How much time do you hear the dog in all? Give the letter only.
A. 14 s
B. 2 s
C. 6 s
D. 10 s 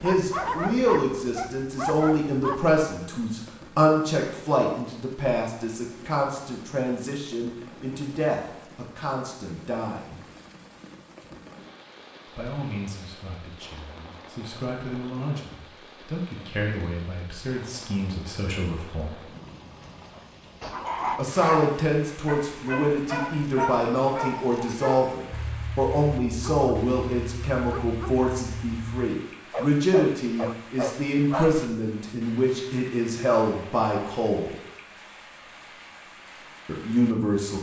A.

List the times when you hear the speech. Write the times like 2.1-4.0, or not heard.
0.0-10.2, 12.2-19.2, 21.1-34.5, 36.6-37.5.